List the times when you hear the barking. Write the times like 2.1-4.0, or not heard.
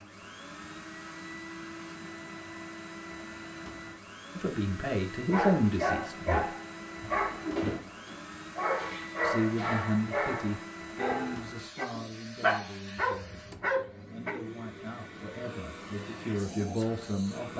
5.3-14.3.